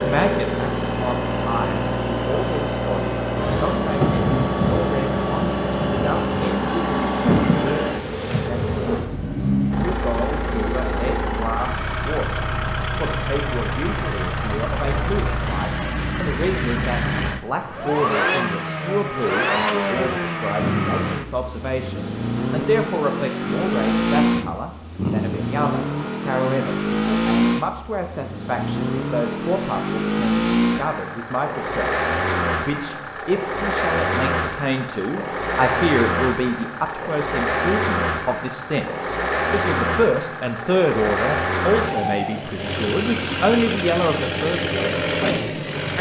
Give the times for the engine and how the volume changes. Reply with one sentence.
You can hear the engine from 0.0 to 45.9 s, at a steady volume.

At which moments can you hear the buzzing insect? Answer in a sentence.
You can hear the buzzing insect from 3.4 to 9.1 s.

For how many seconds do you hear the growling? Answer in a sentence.
The growling can be heard for 2 seconds in total.